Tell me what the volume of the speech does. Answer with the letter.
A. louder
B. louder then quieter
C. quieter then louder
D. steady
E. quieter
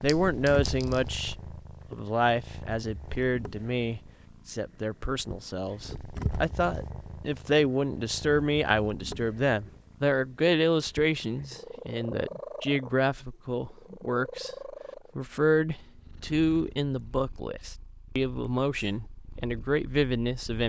D.